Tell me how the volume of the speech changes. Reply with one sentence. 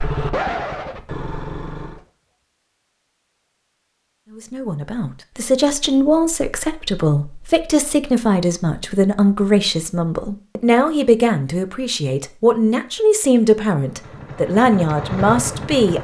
The loudness of the speech stays about the same.